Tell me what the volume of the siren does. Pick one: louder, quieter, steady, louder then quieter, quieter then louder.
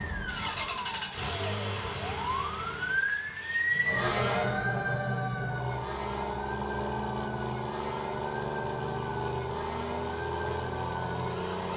louder then quieter.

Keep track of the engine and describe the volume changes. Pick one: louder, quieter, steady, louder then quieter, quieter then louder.
quieter then louder.